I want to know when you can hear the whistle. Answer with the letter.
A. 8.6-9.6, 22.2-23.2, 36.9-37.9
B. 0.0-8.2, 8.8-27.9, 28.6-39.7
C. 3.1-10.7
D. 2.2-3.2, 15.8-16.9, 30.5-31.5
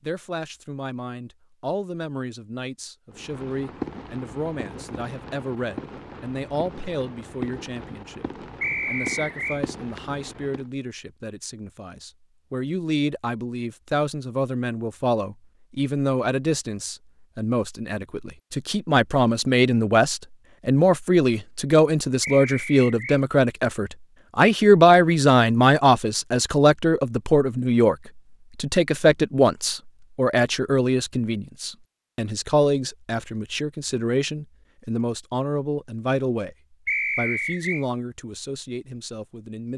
A.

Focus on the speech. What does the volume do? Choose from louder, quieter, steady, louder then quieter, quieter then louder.
louder then quieter.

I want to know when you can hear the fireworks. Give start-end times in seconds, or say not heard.
3.1-10.7.